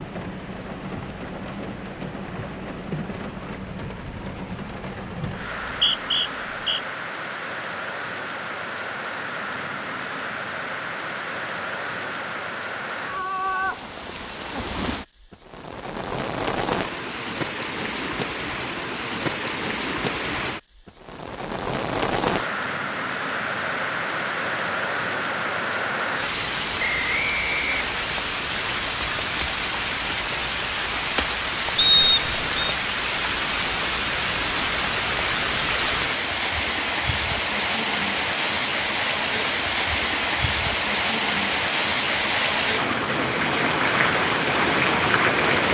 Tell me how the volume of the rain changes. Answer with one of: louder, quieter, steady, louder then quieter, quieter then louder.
louder.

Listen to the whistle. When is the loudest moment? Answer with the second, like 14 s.
32 s.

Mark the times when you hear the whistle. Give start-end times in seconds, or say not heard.
5.6-6.8, 26.8-27.9, 31.8-32.8.